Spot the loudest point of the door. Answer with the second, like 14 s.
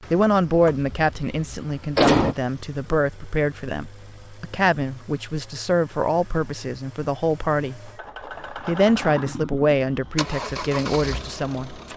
2 s.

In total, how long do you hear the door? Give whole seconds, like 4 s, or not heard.
2 s.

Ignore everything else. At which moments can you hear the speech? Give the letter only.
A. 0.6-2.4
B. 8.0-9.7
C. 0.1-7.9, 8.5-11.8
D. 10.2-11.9
C.